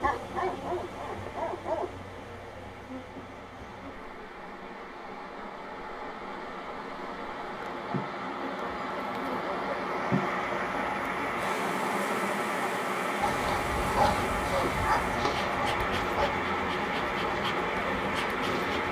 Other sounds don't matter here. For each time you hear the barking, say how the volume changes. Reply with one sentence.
You can hear the barking briefly from 0.0 to 2.5 s; and from 13.2 to 18.8 s, getting quieter.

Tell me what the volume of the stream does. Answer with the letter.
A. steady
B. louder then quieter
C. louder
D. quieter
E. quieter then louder
C.